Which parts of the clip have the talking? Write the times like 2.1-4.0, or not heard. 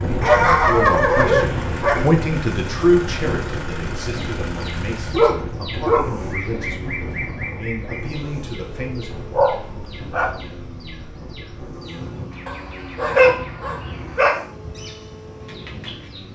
0.1-9.1.